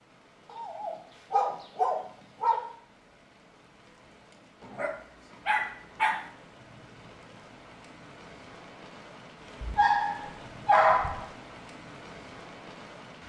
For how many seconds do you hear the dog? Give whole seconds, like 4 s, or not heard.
5 s.